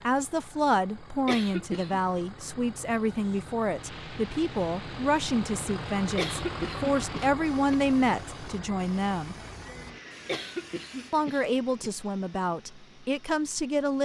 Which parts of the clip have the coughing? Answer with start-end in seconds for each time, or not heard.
1.2-2.0, 6.2-7.8, 10.2-11.9.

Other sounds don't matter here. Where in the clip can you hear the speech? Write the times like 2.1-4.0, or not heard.
0.0-9.3, 11.1-14.0.